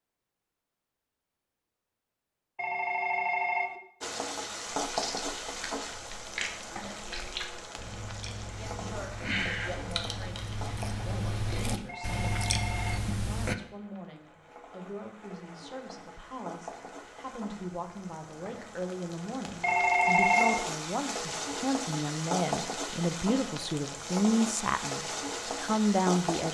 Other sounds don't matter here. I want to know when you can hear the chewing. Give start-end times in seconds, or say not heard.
4.8-13.6.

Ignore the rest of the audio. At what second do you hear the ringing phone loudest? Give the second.
20 s.